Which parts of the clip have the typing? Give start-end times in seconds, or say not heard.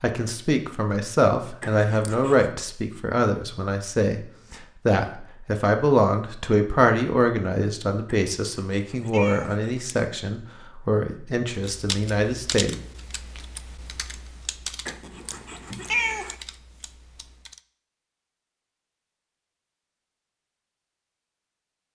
11.5-17.6.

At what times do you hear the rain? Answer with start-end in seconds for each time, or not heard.
not heard.